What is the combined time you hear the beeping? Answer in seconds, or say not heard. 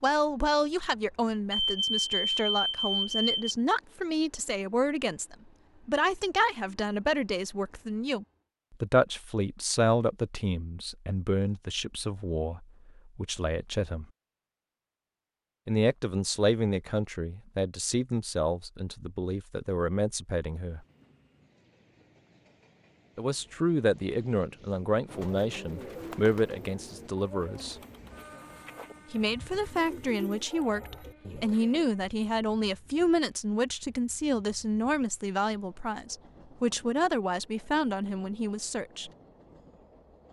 2 s.